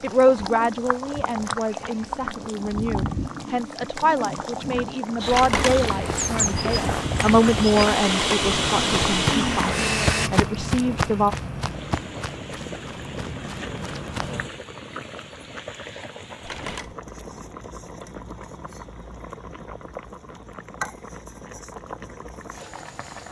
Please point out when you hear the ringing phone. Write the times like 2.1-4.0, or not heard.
5.3-5.8, 8.0-8.4, 16.4-16.9.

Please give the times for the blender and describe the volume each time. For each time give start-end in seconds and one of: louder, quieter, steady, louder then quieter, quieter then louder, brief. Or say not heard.
5.2-10.3 louder.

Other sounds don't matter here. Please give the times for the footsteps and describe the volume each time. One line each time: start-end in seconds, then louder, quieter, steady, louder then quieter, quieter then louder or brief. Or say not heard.
5.2-14.5 quieter.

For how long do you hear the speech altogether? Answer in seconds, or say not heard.
11 s.